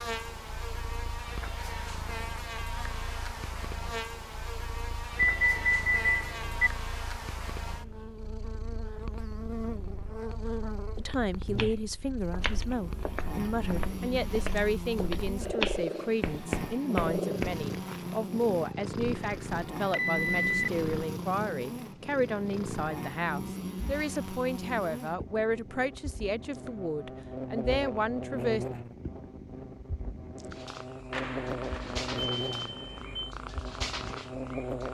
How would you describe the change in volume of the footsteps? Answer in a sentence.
The loudness of the footsteps goes up.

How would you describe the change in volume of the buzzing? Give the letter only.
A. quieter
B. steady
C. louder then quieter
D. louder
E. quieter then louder
B.